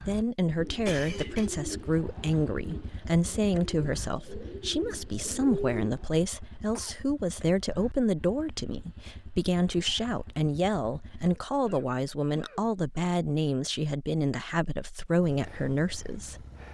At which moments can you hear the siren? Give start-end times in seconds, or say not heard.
not heard.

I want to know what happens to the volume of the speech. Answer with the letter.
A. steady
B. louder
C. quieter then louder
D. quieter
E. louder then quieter
A.